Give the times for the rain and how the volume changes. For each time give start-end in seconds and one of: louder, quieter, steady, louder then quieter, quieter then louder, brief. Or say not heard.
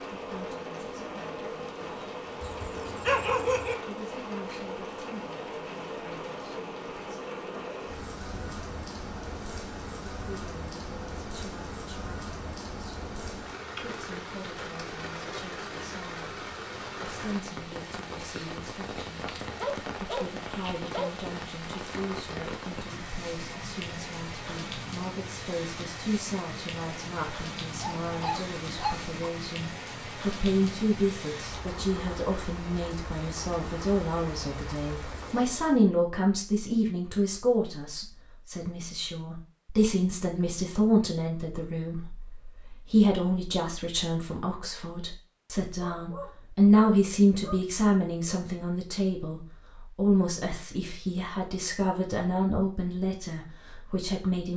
0.0-35.9 steady.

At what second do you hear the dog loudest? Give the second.
3 s.